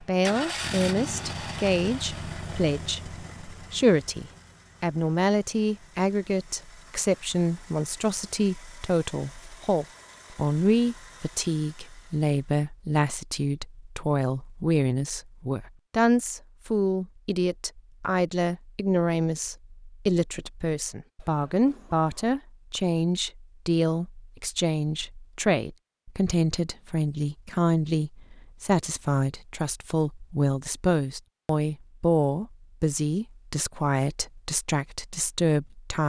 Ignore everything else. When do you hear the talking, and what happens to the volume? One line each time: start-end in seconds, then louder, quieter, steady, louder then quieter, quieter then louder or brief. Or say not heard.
0.0-36.0 steady.